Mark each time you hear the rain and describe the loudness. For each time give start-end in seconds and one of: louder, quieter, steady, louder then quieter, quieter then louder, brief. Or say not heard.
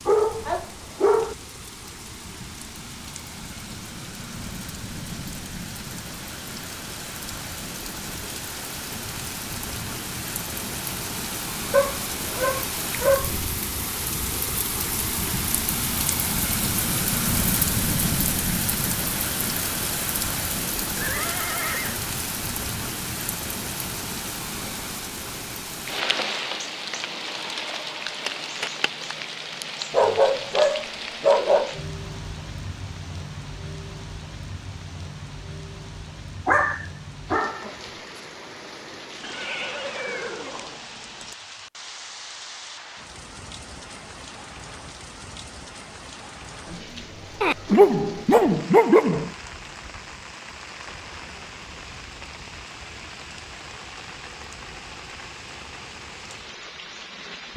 0.0-57.5 louder then quieter.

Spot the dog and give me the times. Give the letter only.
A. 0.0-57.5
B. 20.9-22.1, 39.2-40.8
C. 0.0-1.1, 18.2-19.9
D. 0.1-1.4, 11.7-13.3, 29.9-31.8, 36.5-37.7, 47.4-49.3
D.